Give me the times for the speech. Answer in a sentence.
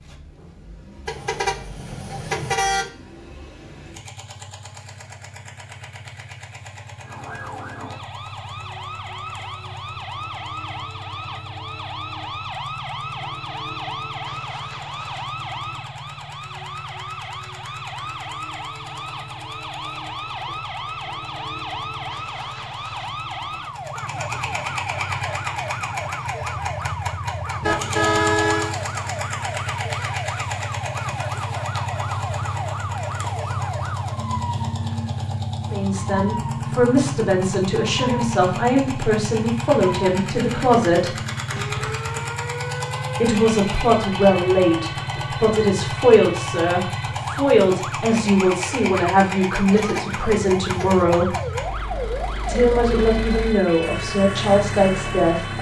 You can hear the speech from 35.7 to 41.1 s, from 43.2 to 51.3 s and from 52.5 to 55.5 s.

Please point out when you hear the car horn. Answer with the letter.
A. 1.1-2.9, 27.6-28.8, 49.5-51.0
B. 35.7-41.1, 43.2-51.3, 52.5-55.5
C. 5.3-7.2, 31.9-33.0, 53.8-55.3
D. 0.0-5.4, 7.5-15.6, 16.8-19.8
A.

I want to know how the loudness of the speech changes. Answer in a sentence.
The loudness of the speech stays about the same.